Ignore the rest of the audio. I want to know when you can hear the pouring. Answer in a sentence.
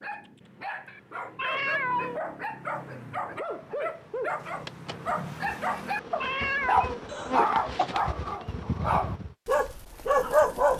You can't hear the pouring here.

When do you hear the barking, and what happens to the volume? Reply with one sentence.
You can hear the barking from 0.0 to 10.7 s, getting louder.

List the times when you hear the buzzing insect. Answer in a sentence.
The buzzing insect can be heard from 3.4 to 9.3 s.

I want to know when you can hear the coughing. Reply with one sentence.
The coughing can be heard from 7.0 to 7.9 s.